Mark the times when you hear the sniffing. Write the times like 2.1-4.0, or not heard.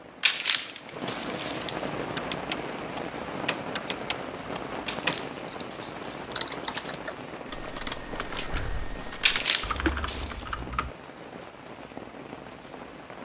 not heard.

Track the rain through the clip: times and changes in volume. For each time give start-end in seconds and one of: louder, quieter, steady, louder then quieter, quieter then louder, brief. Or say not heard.
0.0-13.2 quieter.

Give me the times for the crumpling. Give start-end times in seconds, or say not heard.
0.2-1.9, 4.8-7.0, 9.2-10.4.